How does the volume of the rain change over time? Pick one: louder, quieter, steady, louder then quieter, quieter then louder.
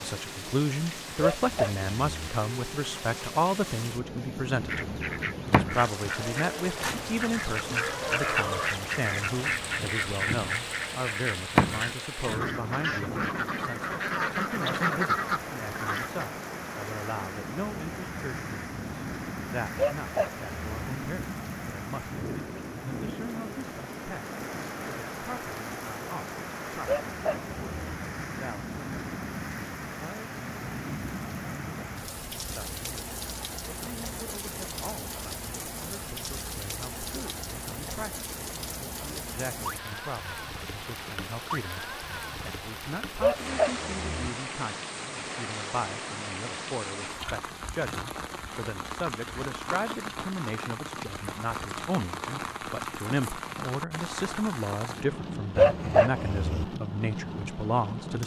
steady.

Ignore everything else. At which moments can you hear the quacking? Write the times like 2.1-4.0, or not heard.
4.7-16.2.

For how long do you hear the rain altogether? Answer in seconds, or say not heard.
58 s.